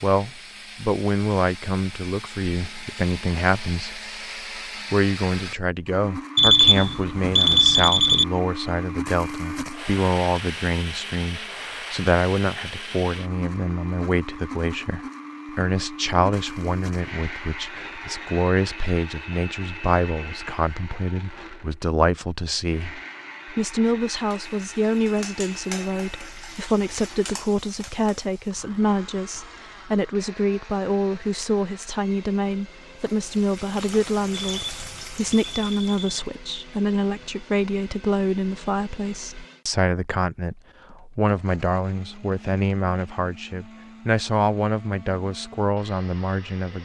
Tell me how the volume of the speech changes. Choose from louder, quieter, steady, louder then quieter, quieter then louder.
steady.